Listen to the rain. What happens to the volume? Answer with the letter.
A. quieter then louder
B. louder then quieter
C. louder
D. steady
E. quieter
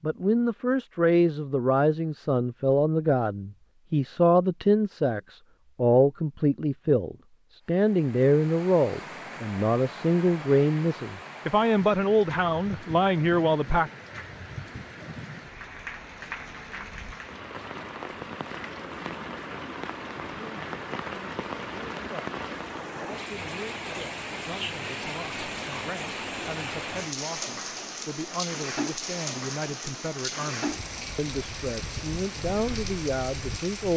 C.